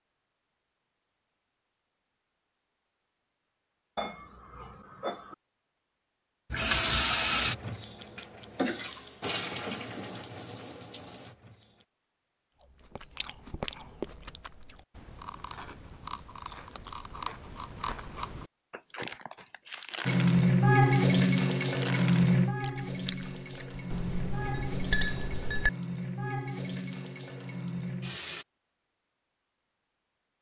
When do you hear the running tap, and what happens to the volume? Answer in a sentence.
The running tap can be heard from 6.5 to 11.8 s, getting quieter; and from 20.1 to 28.4 s, getting quieter.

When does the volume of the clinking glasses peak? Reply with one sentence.
The volume of the clinking glasses peaks at 25 seconds.